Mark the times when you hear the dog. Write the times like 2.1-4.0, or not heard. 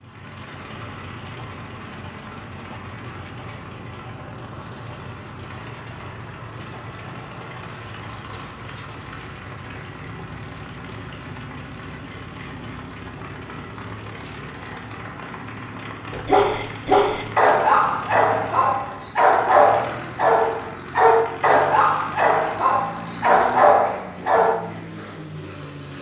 16.1-24.6.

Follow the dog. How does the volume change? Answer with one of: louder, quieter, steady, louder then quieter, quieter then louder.
steady.